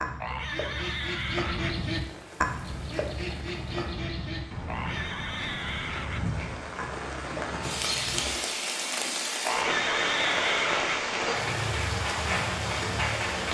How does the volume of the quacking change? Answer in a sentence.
The loudness of the quacking goes down.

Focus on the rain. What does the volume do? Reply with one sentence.
The loudness of the rain goes up.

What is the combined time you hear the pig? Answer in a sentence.
The pig can be heard for 5 seconds in total.